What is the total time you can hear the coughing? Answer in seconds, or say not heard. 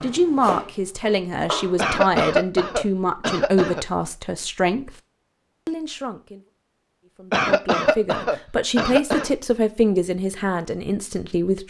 4 s.